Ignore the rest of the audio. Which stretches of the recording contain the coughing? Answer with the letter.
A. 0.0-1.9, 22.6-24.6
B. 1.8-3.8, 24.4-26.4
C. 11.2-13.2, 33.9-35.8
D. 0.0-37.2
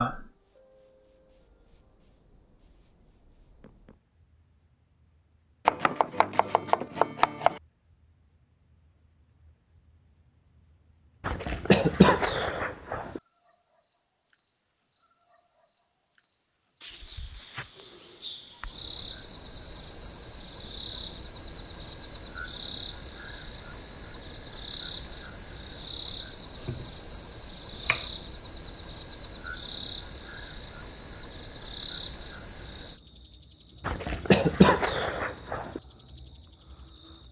C.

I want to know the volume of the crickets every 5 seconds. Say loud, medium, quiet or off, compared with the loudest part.
medium, quiet, medium, loud, loud, loud, loud, loud.